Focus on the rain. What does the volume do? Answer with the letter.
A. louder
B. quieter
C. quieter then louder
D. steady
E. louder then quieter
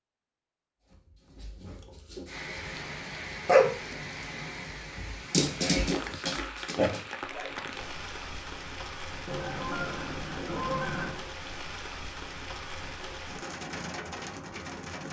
D.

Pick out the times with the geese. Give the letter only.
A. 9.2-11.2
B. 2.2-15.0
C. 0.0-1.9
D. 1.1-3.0
A.